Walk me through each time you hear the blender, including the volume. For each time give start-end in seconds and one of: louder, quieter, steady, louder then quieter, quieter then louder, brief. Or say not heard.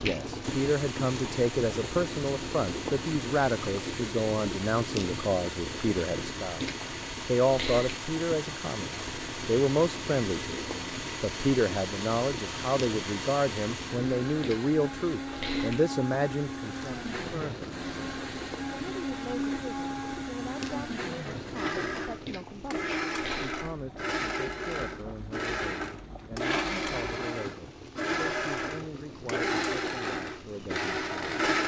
0.4-31.6 louder.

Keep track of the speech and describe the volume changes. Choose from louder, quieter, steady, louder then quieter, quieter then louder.
quieter.